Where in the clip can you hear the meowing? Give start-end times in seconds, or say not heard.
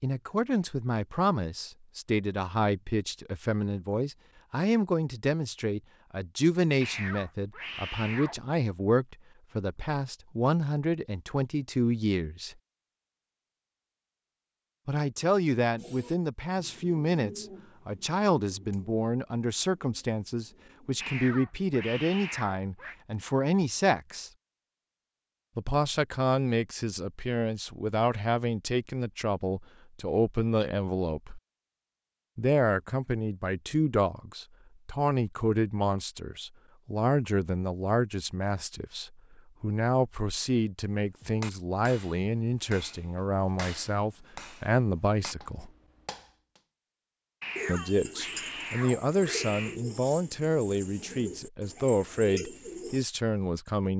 6.8-8.3, 21.0-22.9, 47.4-49.8.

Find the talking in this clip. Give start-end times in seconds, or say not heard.
0.0-12.6, 14.8-24.3, 25.6-31.4, 32.4-45.7, 47.6-53.9.